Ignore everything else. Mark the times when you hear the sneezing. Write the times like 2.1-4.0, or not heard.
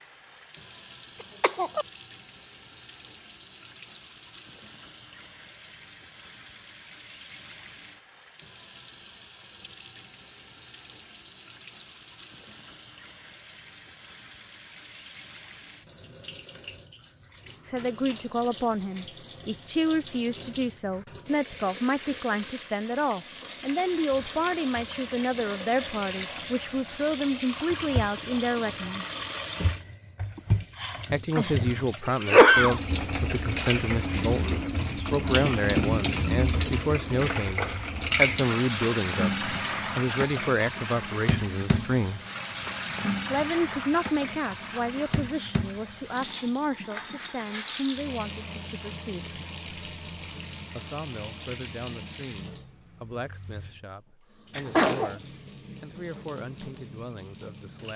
1.4-1.9, 30.8-32.8, 54.5-55.1.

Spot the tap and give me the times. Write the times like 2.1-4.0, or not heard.
0.0-57.9.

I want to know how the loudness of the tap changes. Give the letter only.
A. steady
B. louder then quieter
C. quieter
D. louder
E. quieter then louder
B.